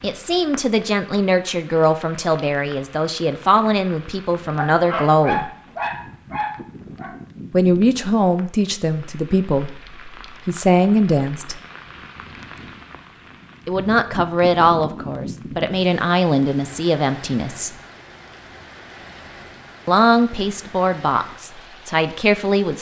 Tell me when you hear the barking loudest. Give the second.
5 s.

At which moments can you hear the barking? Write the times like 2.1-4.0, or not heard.
4.5-7.2.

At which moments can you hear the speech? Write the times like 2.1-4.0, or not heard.
0.0-5.5, 7.5-11.6, 13.7-17.7, 19.9-22.7.